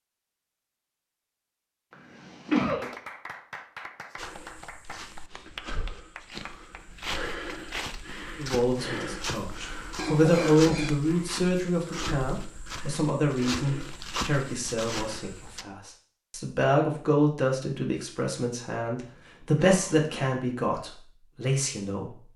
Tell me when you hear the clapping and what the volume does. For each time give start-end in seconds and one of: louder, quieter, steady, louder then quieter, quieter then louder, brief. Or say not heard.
2.6-8.1 quieter.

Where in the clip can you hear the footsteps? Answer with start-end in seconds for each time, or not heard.
4.2-15.7.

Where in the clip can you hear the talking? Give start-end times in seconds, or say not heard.
8.3-22.2.